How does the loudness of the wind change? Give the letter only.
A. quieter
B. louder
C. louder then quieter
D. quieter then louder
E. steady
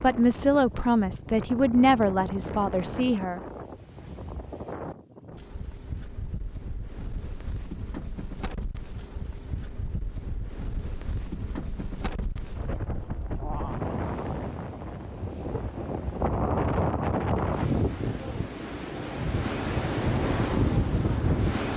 B.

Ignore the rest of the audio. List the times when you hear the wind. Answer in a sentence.
The wind can be heard from 0.0 to 21.7 s.